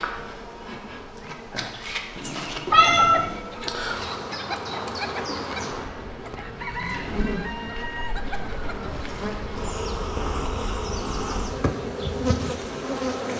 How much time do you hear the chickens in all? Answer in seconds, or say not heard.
6 s.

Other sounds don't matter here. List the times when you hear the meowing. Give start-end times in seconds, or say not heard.
2.1-3.4.